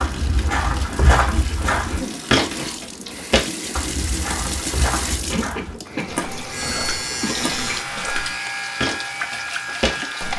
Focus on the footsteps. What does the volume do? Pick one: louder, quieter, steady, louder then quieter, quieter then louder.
quieter then louder.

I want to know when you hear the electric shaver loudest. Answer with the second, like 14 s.
7 s.